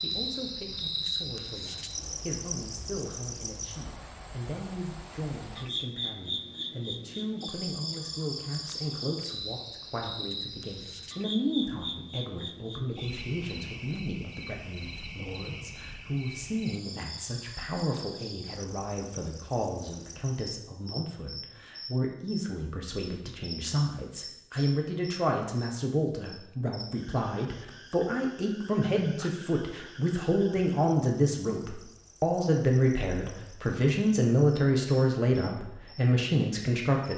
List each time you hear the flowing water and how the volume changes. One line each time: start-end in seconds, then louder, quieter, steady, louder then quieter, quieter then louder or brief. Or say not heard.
not heard.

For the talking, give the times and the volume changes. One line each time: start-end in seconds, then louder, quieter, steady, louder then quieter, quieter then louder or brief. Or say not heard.
0.0-37.1 louder.